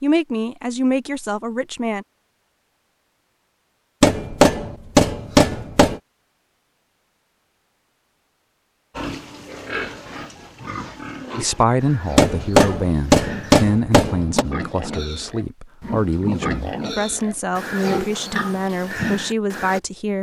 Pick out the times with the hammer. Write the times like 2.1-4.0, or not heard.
4.0-6.0, 12.2-14.4.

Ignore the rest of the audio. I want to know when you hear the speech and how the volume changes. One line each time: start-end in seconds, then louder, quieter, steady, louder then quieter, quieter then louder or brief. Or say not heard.
0.0-2.0 brief
11.3-20.1 steady.